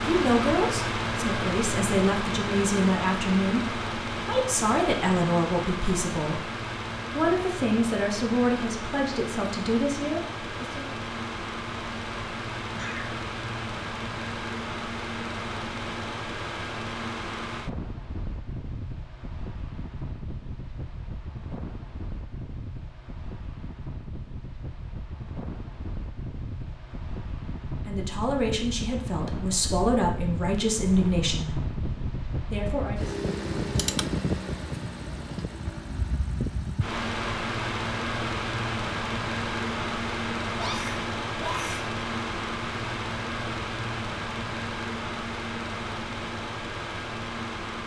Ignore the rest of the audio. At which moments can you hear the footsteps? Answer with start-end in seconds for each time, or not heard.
not heard.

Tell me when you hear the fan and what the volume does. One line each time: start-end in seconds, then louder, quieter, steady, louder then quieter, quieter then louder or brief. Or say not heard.
0.0-47.8 quieter then louder.